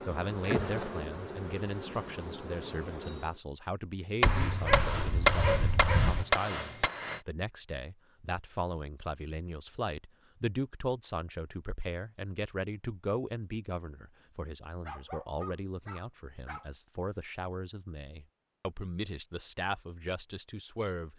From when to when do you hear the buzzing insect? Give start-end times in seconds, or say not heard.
0.0-3.4.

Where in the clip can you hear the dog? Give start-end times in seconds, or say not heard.
4.2-6.2, 14.8-16.6.